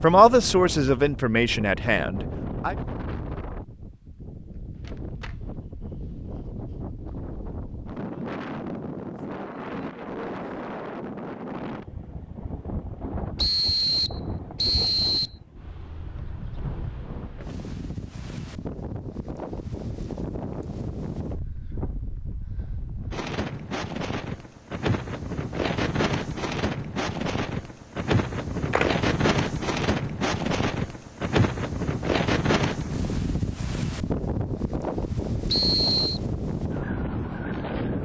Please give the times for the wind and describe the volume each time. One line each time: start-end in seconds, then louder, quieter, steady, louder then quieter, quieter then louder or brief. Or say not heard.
0.0-38.0 louder.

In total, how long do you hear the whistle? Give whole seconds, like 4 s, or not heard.
3 s.